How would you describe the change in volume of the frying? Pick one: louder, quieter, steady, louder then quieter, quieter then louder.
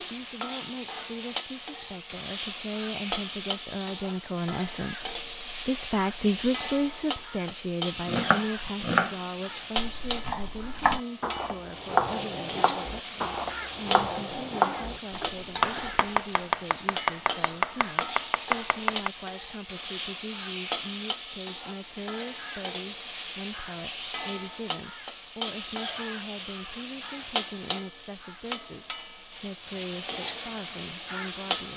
steady.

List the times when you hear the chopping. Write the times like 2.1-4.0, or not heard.
8.1-19.1.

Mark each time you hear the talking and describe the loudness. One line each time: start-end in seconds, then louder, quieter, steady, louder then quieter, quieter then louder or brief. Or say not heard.
0.0-31.7 quieter.